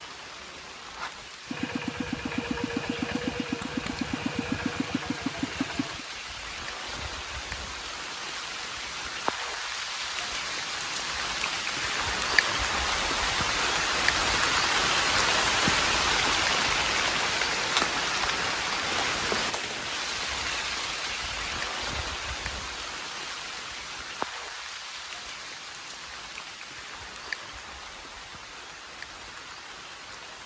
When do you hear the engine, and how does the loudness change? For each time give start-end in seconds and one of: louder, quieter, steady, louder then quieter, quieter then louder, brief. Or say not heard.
1.4-6.0 steady.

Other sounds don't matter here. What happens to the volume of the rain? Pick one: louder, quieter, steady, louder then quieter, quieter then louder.
louder then quieter.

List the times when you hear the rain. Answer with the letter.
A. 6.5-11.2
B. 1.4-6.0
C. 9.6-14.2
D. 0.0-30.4
D.